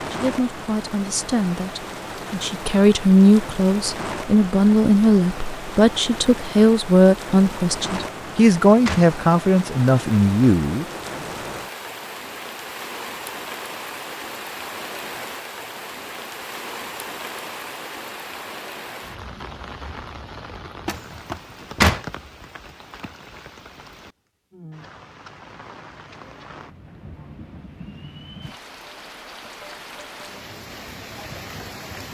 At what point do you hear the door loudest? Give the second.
22 s.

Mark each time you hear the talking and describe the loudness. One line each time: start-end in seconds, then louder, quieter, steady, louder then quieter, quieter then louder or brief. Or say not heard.
0.0-10.8 louder.